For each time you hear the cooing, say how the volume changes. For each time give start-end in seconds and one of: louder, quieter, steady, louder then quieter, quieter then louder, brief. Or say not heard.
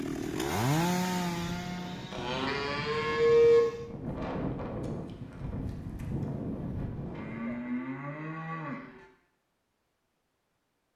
not heard.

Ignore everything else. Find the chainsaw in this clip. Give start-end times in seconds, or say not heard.
0.0-3.9.